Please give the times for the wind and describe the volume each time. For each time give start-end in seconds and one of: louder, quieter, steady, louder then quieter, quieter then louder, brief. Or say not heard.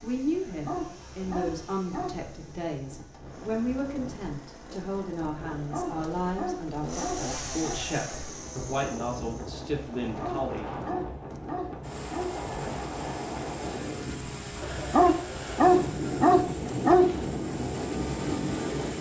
0.0-18.9 louder.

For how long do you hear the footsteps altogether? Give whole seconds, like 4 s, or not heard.
not heard.